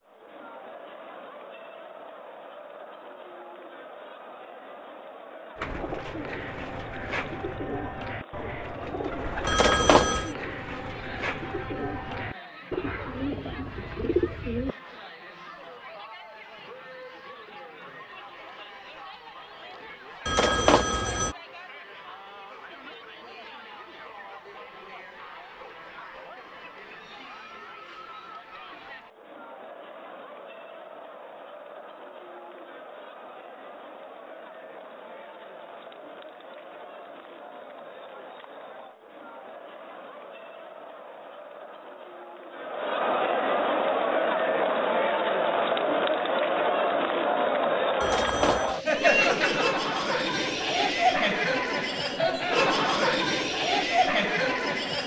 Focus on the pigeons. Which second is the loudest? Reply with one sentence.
The loudest moment of the pigeons is at 14 seconds.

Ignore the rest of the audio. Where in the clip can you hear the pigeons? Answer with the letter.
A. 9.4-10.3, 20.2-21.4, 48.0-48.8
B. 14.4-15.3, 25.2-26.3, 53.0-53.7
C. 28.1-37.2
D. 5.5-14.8
D.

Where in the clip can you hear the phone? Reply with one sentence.
The phone can be heard from 9.4 to 10.3 s, from 20.2 to 21.4 s and from 48.0 to 48.8 s.